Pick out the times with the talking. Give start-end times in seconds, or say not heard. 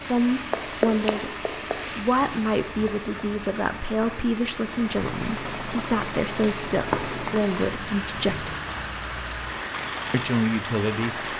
0.0-1.3, 1.9-8.6, 10.1-11.3.